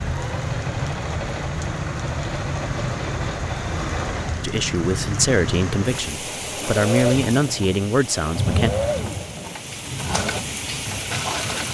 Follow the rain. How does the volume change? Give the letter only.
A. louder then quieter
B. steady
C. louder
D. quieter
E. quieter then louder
B.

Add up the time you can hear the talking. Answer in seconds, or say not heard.
4 s.